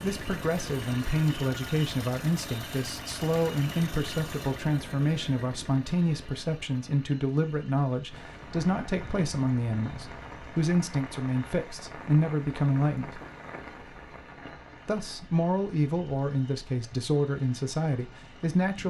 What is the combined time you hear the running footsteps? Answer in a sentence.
You can't hear the running footsteps here.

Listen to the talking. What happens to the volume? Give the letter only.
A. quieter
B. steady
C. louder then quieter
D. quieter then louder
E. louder
B.